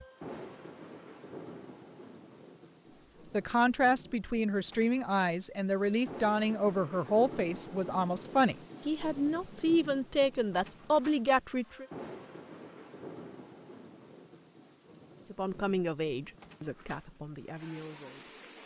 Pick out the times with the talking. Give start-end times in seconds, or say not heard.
3.3-11.8, 15.3-18.3.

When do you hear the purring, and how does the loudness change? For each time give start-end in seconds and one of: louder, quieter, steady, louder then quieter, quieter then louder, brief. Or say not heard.
not heard.